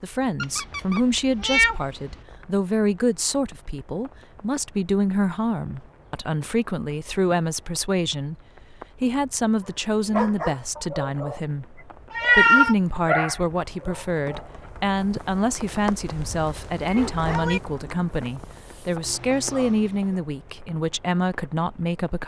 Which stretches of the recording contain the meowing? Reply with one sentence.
You can hear the meowing from 0.4 to 2.1 s, from 12.1 to 12.8 s and from 17.1 to 17.6 s.